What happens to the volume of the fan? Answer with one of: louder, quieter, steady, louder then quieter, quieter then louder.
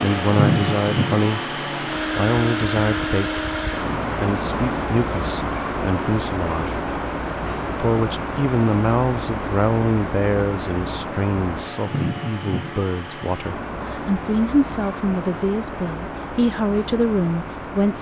quieter.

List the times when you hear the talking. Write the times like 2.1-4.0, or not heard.
0.0-3.5, 4.2-6.8, 7.8-17.9.